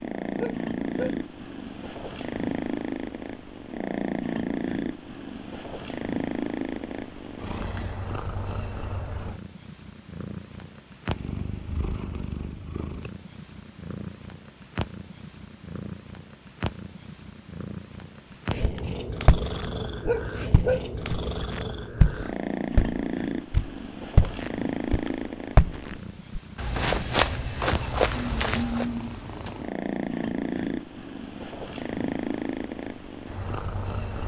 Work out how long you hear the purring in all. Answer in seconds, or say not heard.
34 s.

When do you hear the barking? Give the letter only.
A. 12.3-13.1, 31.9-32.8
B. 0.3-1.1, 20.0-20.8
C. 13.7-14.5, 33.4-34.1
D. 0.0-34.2
B.